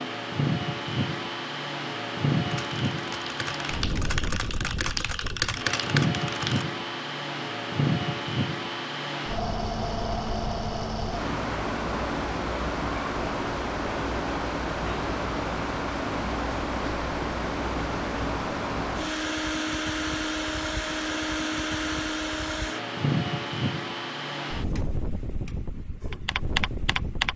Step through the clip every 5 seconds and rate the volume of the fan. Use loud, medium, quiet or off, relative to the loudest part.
loud, loud, loud, loud, loud, medium.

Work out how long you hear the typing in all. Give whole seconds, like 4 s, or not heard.
6 s.